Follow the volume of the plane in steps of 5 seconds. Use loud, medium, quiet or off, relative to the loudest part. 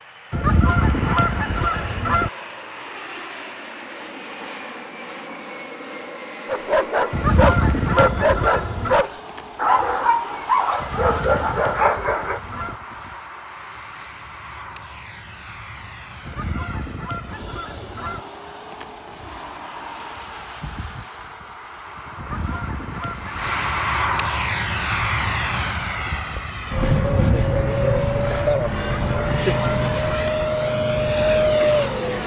quiet, quiet, quiet, quiet, medium, loud, loud.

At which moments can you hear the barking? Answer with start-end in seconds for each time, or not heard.
6.5-12.4.